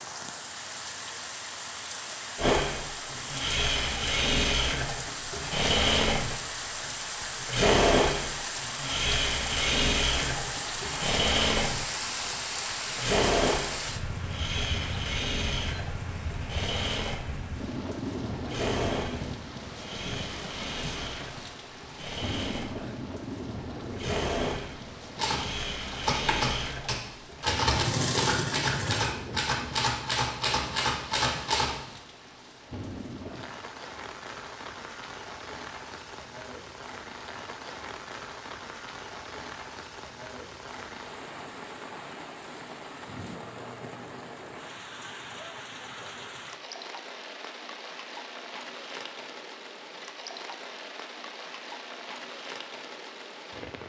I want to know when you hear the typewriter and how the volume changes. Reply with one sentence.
The typewriter can be heard from 25.1 to 31.8 s, at a steady volume.